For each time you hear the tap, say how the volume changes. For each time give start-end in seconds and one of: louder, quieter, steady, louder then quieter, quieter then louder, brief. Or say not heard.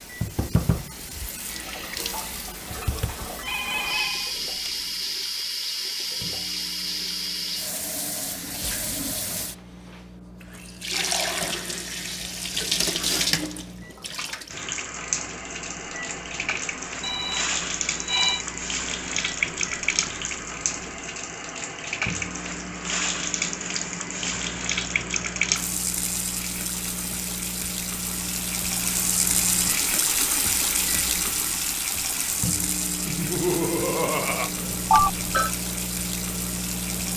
0.0-37.1 steady.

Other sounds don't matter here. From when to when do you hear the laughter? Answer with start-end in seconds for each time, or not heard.
33.0-34.5.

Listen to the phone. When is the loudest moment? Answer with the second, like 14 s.
35 s.